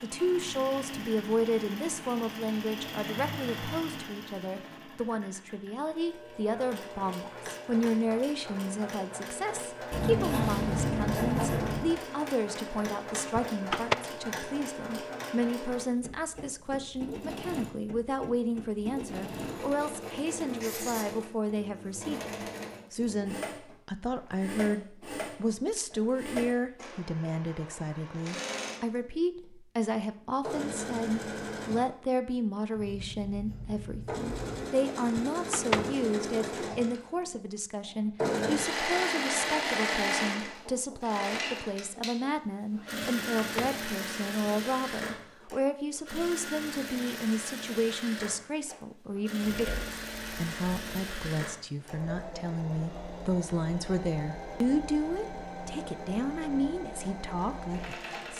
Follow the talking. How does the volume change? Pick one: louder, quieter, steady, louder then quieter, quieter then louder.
steady.